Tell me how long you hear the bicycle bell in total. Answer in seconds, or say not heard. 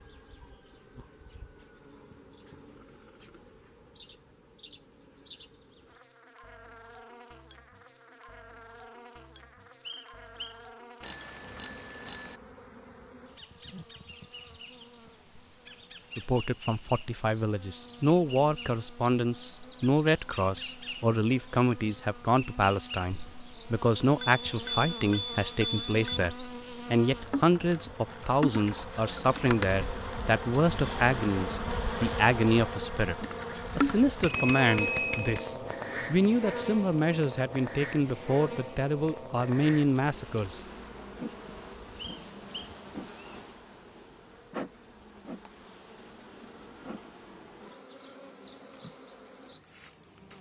5 s.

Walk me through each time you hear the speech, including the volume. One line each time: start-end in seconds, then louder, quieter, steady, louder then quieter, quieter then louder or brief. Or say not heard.
16.1-40.6 steady.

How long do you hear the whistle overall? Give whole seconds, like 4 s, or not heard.
2 s.